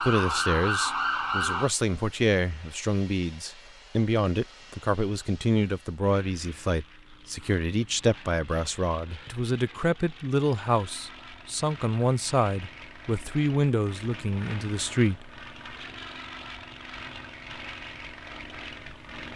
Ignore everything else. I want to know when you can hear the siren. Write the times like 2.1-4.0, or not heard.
0.0-1.7.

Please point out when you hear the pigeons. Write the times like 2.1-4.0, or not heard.
not heard.